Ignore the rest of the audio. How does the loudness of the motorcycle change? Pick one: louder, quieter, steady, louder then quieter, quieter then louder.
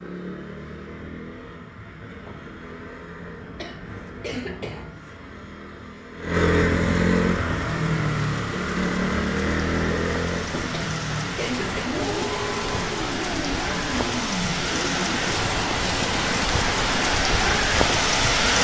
louder then quieter.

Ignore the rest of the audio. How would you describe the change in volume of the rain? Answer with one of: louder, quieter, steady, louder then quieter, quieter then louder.
louder.